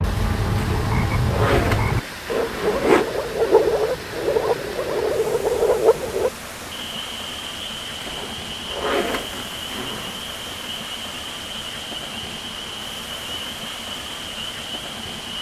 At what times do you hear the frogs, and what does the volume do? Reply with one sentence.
The frogs can be heard from 0.0 to 15.3 s, getting quieter.